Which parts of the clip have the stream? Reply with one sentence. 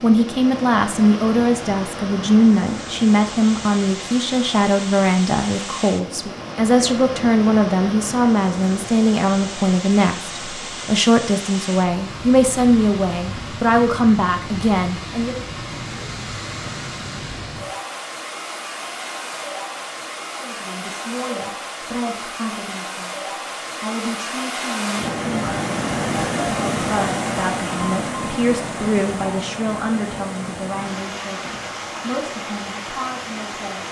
You can hear the stream from 0.0 to 33.8 s.